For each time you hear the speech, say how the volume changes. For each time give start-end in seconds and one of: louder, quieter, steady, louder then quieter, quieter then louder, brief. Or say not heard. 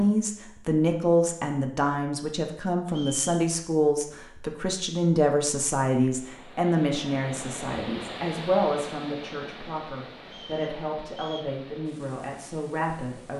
0.0-13.3 quieter.